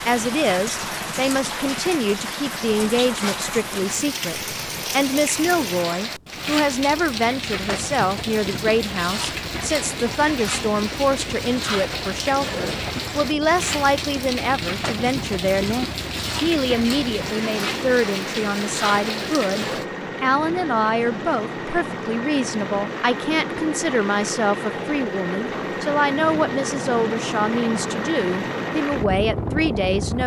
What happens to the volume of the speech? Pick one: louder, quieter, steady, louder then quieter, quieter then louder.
steady.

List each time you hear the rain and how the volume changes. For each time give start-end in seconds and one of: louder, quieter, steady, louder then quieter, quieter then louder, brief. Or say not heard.
0.0-19.9 steady.